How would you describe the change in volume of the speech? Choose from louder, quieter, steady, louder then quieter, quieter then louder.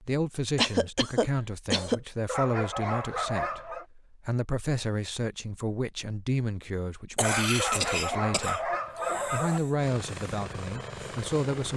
steady.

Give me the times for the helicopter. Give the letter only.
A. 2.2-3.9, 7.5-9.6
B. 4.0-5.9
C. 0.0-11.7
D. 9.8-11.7
D.